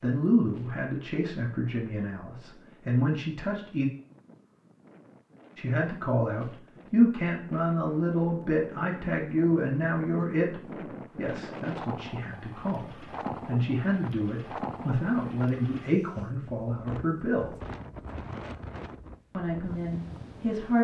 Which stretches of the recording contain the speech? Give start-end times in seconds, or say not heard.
0.0-3.9, 5.5-17.6, 19.3-20.7.